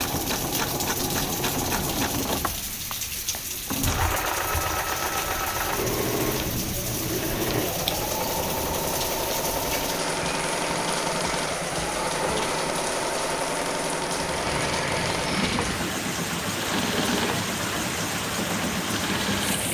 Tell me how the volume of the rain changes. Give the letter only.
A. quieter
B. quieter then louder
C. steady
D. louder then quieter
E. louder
C.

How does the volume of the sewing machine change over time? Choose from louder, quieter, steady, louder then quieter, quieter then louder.
steady.